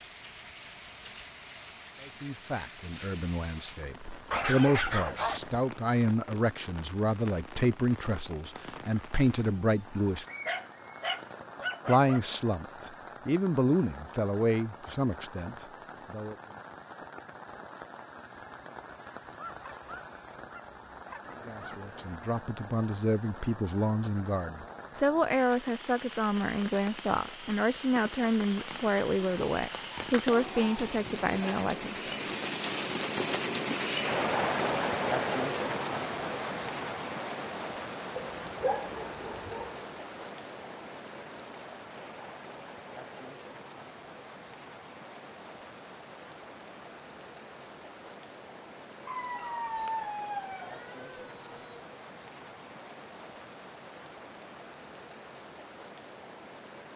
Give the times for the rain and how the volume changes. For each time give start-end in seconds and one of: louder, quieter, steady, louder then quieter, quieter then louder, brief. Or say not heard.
0.0-56.9 louder then quieter.